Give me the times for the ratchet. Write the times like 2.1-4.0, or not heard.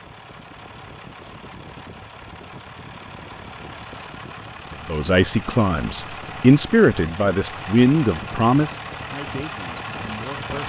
not heard.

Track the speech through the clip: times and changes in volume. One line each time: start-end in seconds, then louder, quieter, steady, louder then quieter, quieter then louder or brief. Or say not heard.
4.8-10.6 louder then quieter.